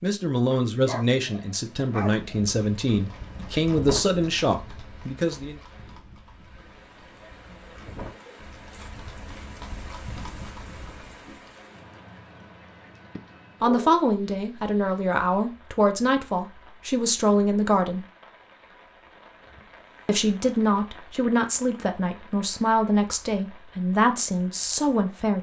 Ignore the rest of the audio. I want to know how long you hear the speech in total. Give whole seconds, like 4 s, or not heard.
15 s.